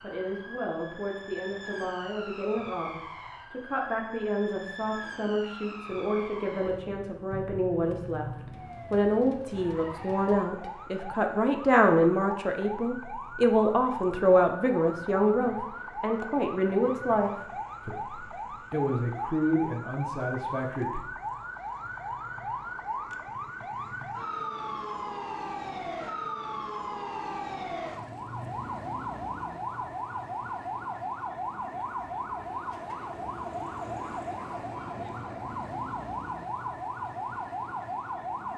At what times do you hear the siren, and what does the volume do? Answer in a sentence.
The siren can be heard from 0.0 to 38.5 s, getting louder.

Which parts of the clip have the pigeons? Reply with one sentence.
The pigeons can't be heard in this clip.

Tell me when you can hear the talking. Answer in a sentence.
You can hear the talking from 0.0 to 21.0 s.